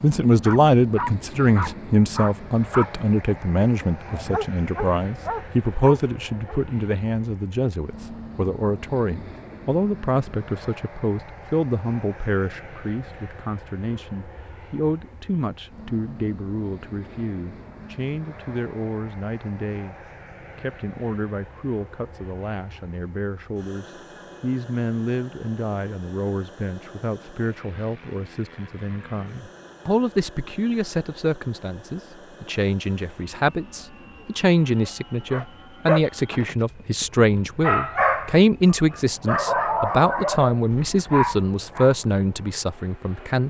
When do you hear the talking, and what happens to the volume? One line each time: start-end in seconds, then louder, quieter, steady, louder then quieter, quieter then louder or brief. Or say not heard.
0.0-19.9 quieter
20.6-43.4 louder.